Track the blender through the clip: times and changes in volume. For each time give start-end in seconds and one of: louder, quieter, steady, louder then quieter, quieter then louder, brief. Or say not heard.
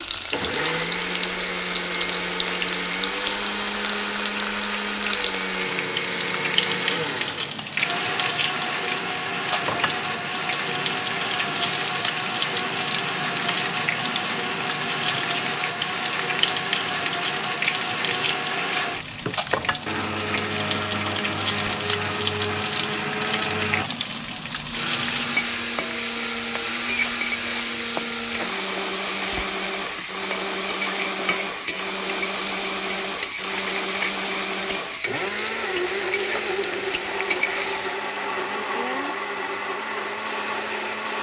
0.1-41.1 steady.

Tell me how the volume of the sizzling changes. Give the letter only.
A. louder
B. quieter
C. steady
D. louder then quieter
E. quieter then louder
C.